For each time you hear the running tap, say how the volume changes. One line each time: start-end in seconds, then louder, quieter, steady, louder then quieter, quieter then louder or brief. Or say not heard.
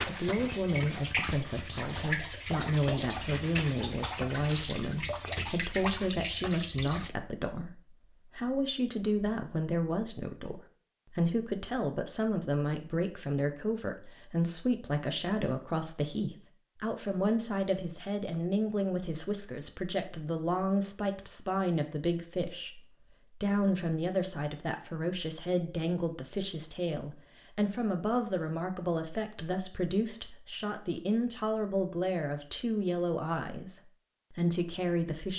0.0-7.1 steady.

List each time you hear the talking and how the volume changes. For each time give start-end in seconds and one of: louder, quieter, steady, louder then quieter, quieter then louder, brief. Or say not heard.
0.1-35.3 steady.